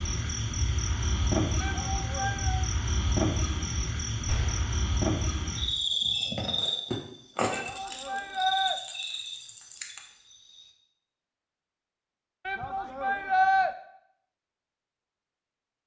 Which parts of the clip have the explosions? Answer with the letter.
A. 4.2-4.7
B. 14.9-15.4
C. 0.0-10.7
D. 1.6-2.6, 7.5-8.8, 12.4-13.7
A.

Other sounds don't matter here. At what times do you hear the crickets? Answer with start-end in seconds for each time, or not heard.
0.0-10.7.